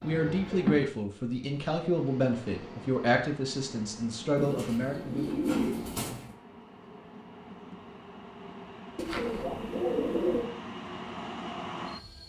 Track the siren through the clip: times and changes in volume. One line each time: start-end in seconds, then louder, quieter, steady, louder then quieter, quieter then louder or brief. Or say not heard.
not heard.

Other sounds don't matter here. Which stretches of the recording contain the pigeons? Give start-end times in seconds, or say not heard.
0.0-0.9, 4.3-6.2, 8.9-10.5.